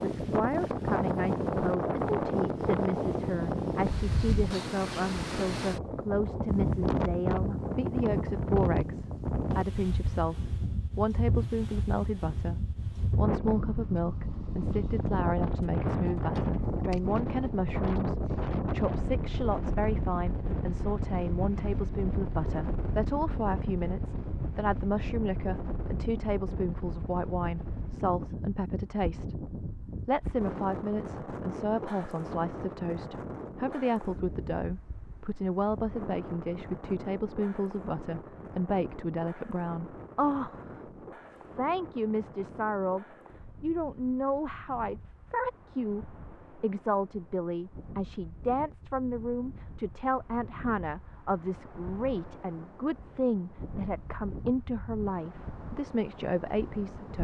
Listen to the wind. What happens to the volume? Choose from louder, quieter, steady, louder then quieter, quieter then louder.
quieter.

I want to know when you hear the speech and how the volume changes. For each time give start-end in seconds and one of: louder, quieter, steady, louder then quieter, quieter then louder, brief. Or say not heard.
0.0-57.1 steady.